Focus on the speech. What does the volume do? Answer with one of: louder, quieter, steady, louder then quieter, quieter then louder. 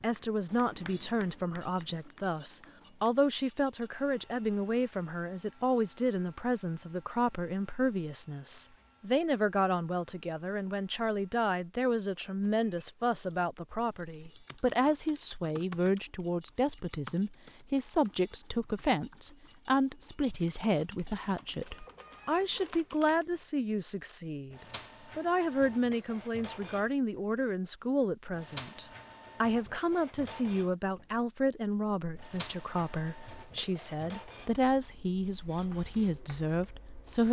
steady.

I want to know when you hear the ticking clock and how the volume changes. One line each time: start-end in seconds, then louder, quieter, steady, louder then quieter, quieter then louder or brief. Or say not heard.
not heard.